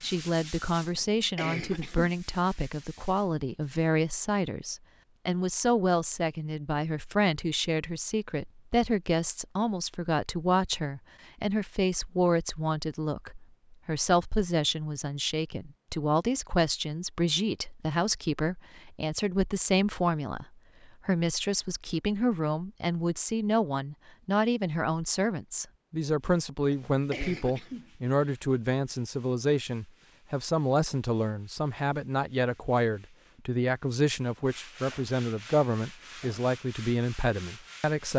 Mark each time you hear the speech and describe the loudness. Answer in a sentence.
The speech can be heard from 0.0 to 20.4 s, at a steady volume; and from 21.1 to 38.1 s, at a steady volume.